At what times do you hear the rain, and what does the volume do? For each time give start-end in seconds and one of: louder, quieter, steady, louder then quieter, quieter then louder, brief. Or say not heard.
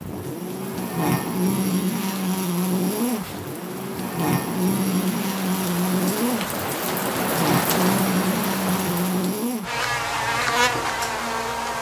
0.0-9.6 louder.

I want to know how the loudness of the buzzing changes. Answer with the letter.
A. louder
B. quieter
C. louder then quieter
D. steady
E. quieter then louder
D.